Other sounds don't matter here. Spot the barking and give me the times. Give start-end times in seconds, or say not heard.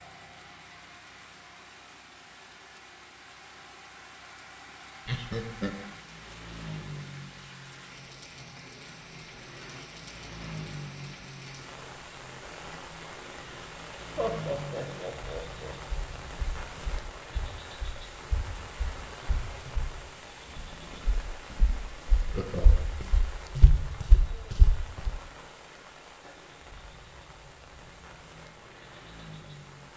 not heard.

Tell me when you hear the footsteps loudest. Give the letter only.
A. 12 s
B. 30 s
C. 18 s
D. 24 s
D.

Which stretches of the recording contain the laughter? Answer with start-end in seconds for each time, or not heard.
5.0-5.8, 14.2-15.8, 22.2-22.9.